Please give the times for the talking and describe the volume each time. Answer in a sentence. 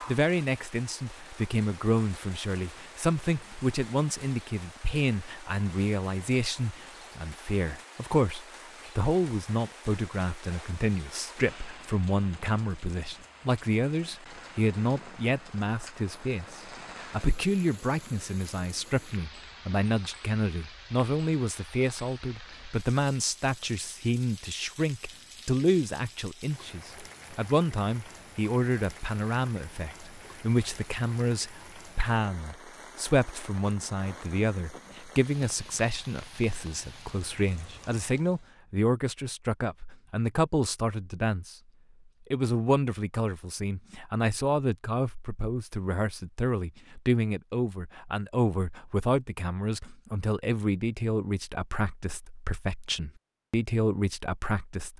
The talking can be heard from 0.1 to 41.5 s, at a steady volume; and from 42.3 to 54.9 s, at a steady volume.